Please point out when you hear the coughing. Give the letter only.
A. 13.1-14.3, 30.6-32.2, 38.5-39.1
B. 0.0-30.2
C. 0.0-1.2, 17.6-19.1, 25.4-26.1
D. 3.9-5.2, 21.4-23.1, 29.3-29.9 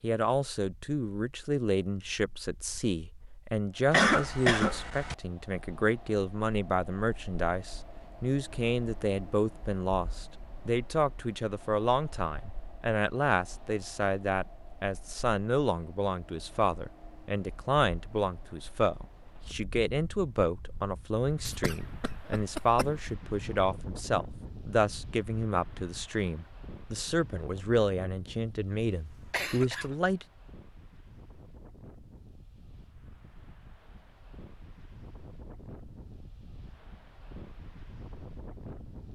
D.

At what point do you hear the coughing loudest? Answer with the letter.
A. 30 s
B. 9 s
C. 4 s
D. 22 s
C.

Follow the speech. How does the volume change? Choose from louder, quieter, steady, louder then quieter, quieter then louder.
steady.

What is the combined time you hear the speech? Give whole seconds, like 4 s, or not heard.
30 s.